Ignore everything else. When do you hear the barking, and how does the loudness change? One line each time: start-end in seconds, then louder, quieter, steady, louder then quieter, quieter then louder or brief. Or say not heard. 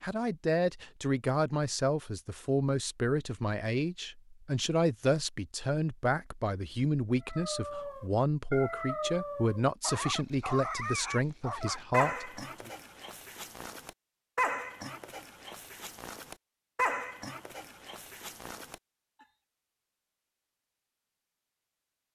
7.2-18.8 steady.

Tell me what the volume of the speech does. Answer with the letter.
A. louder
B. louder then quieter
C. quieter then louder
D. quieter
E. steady
E.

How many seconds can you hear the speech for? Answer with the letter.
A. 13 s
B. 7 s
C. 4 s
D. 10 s
A.